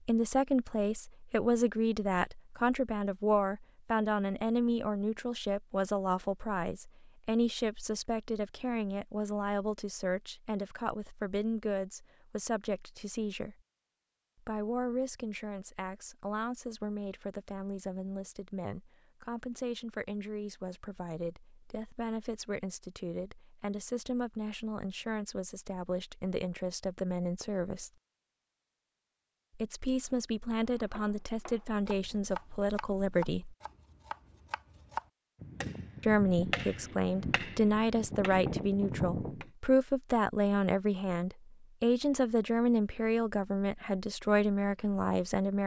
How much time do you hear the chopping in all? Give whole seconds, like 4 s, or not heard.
9 s.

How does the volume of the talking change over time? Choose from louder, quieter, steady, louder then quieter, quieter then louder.
quieter then louder.